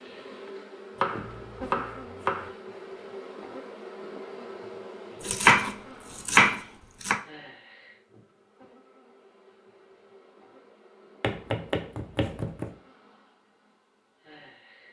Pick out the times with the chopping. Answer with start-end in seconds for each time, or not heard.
0.9-2.5, 5.2-7.2, 11.2-12.7.